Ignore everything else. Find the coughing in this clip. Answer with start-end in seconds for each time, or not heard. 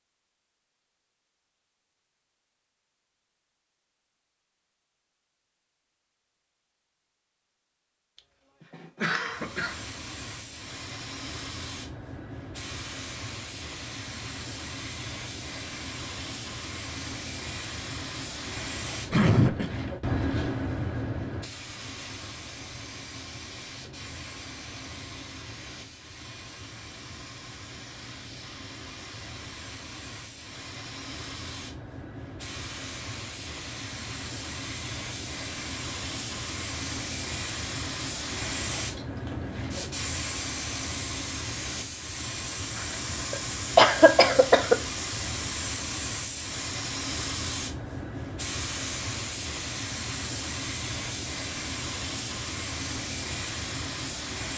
8.7-9.8, 19.1-19.7, 43.3-44.8.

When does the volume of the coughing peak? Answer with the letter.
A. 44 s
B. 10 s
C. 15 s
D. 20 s
A.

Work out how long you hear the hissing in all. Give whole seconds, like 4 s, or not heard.
45 s.